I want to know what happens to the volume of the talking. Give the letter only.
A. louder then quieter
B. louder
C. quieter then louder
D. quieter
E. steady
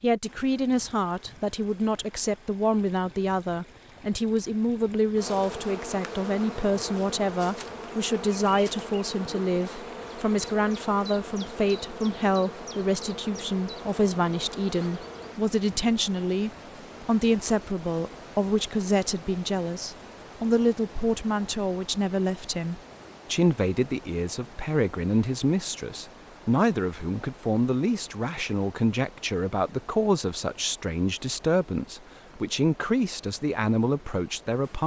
E.